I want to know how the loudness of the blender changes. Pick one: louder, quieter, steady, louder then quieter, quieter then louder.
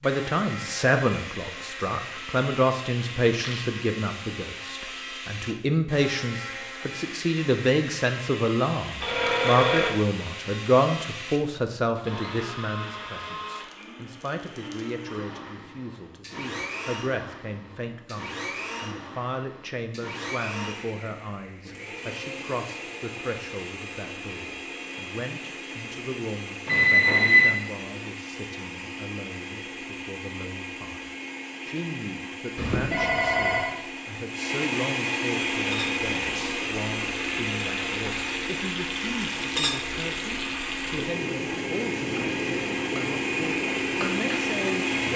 louder.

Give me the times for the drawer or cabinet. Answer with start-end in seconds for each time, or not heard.
not heard.